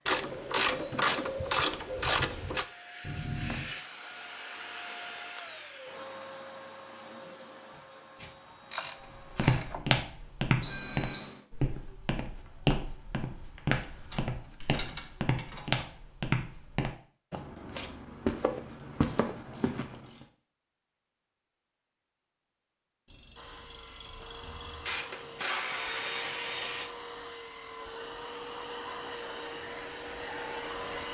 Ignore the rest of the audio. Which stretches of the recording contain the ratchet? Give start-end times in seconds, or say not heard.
0.1-2.6, 8.2-9.9, 13.7-15.9, 18.7-20.2, 24.9-26.9.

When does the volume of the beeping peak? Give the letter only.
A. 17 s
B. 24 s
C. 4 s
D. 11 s
D.